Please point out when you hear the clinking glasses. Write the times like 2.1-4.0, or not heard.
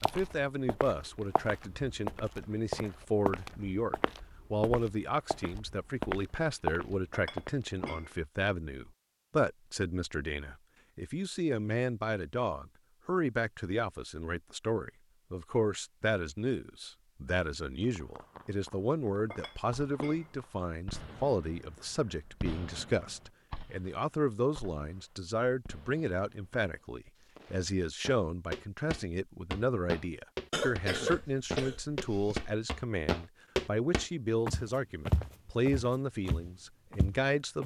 7.1-8.1, 19.3-20.3.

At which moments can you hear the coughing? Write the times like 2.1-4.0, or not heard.
30.5-32.5.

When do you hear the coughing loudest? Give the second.
31 s.